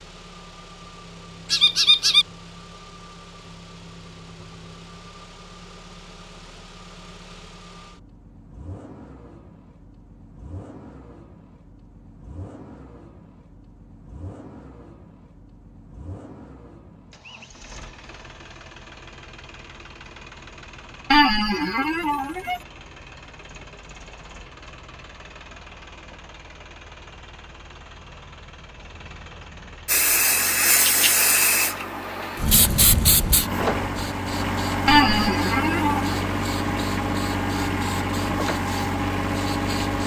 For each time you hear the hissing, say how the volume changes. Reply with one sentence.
The hissing can be heard from 29.9 to 40.0 s, getting quieter.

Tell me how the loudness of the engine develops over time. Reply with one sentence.
The loudness of the engine goes up.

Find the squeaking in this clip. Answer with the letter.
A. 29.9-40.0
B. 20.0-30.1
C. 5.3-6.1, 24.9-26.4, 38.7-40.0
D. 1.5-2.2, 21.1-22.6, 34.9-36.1
D.